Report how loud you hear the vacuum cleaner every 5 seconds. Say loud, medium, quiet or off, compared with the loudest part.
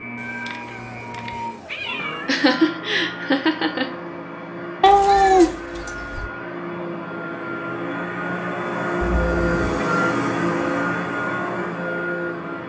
medium, loud, loud.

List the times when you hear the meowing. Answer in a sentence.
The meowing can be heard from 0.1 to 2.4 s, from 4.8 to 6.3 s and from 9.0 to 9.8 s.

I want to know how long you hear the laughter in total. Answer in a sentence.
You can hear the laughter for 2 seconds altogether.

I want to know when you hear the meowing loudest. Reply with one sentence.
The volume of the meowing peaks at 5 seconds.